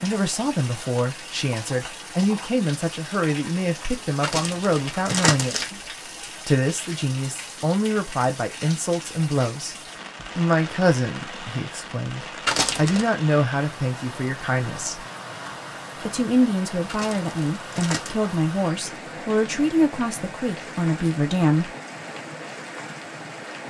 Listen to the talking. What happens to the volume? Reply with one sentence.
The loudness of the talking stays about the same.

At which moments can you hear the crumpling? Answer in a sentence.
The crumpling can be heard from 4.2 to 5.7 s, from 12.4 to 13.1 s and from 16.9 to 18.1 s.